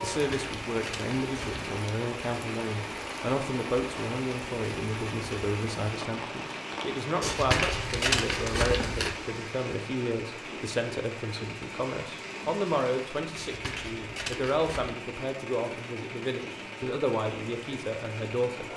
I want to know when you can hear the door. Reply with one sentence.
The door can't be heard in this clip.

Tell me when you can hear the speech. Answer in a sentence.
You can hear the speech from 0.0 to 18.6 s.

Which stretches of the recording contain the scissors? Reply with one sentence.
The scissors can be heard from 0.1 to 1.6 s, from 7.2 to 9.2 s and from 13.3 to 15.0 s.